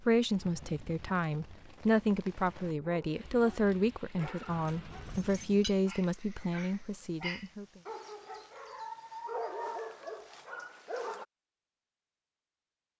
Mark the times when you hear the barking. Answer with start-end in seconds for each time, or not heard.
2.8-11.2.